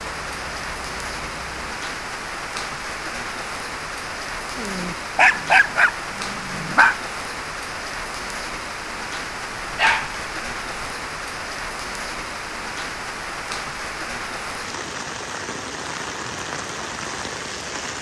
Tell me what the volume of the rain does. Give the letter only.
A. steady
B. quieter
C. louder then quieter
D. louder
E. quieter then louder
A.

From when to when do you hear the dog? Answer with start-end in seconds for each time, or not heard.
4.5-7.0, 9.7-10.9.